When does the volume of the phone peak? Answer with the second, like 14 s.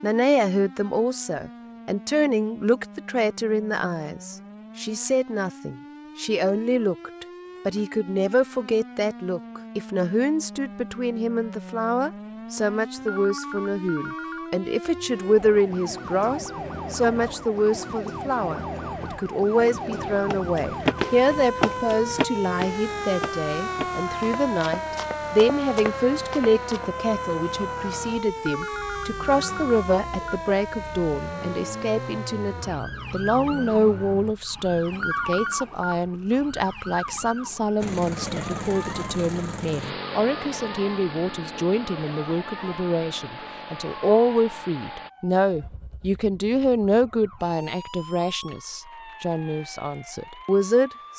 35 s.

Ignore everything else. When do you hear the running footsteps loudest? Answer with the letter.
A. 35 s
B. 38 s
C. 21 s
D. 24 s
C.